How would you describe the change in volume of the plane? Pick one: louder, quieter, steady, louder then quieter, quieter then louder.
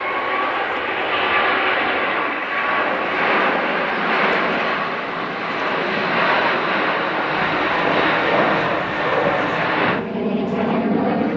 steady.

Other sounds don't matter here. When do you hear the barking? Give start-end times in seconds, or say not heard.
7.3-9.7.